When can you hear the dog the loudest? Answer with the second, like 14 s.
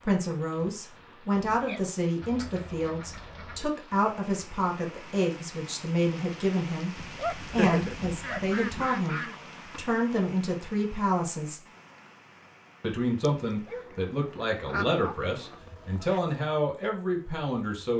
8 s.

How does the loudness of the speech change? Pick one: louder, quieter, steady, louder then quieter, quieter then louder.
steady.